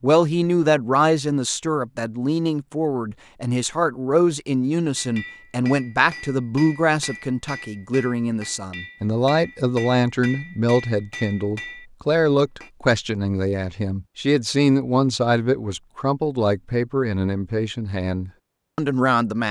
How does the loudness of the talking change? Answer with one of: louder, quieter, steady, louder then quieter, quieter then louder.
steady.